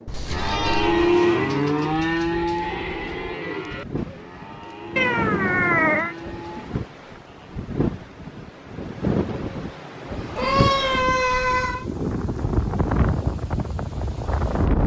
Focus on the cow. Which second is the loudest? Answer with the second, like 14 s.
1 s.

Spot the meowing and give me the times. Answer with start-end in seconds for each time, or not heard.
0.1-1.2, 5.0-6.2, 10.3-11.8.